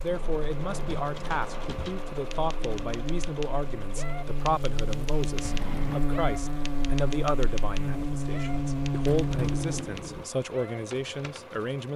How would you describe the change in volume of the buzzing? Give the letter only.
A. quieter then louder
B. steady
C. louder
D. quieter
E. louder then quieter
C.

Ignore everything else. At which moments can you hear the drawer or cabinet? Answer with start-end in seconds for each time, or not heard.
0.1-1.9, 5.3-6.0, 9.0-10.3.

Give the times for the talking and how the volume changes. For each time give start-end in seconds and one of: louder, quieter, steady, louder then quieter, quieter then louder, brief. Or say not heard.
0.0-11.9 steady.